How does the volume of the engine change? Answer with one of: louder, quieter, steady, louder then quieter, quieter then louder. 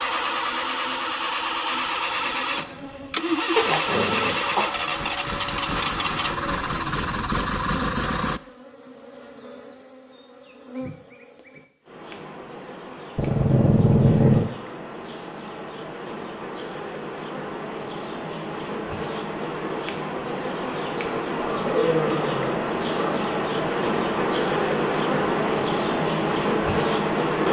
steady.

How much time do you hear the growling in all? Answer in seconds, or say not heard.
4 s.